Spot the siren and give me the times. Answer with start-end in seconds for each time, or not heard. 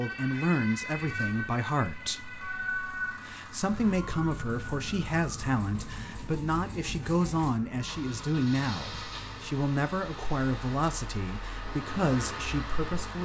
0.0-9.6.